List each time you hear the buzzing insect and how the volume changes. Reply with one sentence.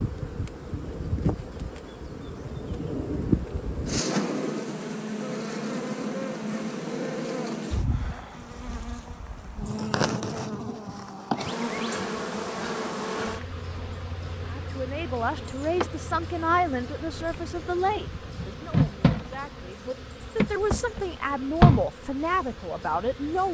You can hear the buzzing insect from 0.0 to 23.4 s, getting quieter then louder.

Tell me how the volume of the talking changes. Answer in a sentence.
The volume of the talking goes down, then up.